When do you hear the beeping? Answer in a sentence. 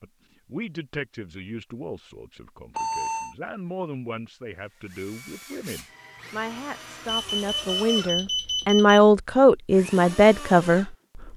You can hear the beeping from 2.8 to 3.4 s and from 7.0 to 9.0 s.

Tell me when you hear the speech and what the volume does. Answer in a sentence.
You can hear the speech from 0.0 to 11.3 s, getting louder.